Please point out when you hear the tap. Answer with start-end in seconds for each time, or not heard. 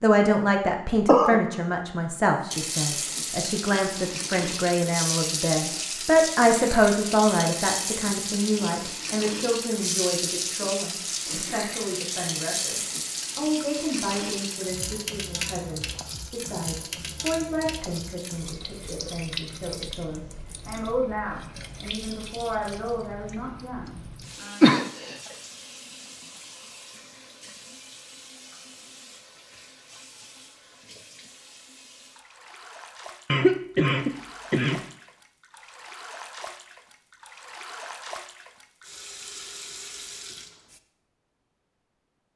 2.5-40.8.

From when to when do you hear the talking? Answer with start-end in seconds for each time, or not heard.
0.0-24.7.